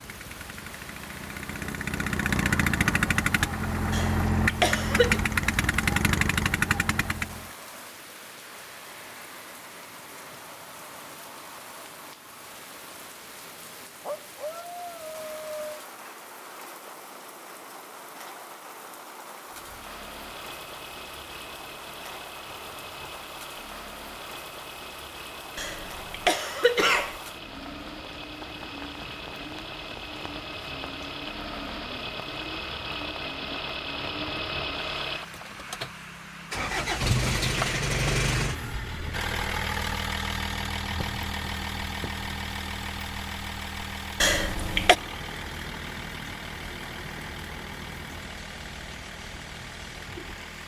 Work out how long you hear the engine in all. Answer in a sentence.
You can hear the engine for 39 seconds altogether.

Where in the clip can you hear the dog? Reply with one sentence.
You can hear the dog from 14.0 to 15.8 s.